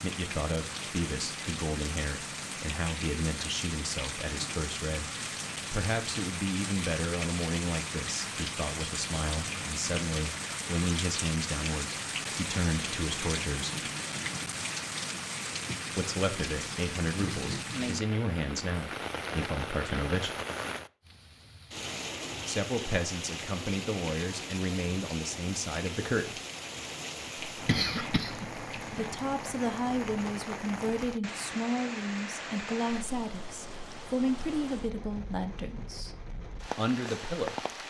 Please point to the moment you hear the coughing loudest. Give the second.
28 s.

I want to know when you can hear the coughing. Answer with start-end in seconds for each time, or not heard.
27.6-29.1.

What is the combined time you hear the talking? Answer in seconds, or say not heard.
31 s.